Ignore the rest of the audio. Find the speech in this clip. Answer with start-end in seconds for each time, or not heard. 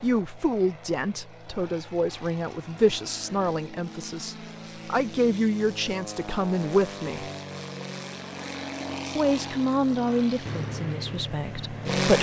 0.0-7.2, 9.2-12.1.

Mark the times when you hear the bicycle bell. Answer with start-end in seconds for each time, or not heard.
not heard.